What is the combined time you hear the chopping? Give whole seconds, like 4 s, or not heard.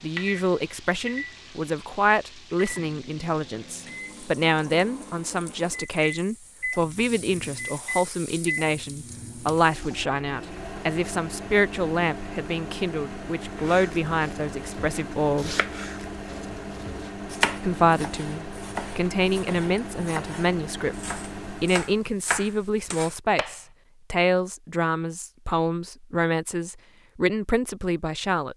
10 s.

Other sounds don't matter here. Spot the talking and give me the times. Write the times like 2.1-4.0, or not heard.
0.0-15.6, 17.6-28.5.